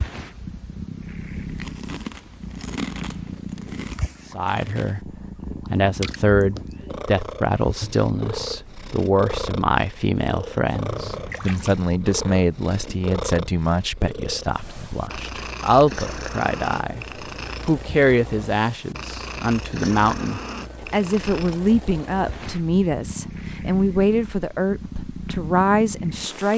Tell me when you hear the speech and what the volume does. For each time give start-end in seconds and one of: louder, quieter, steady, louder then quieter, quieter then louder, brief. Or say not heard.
4.3-26.5 steady.